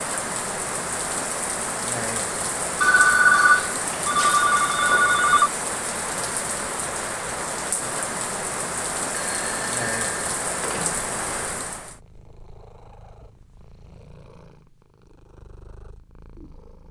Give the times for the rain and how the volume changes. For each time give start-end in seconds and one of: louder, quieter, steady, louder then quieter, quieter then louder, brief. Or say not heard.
0.0-12.0 steady.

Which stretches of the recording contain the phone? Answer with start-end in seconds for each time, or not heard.
2.8-5.5, 9.1-11.1.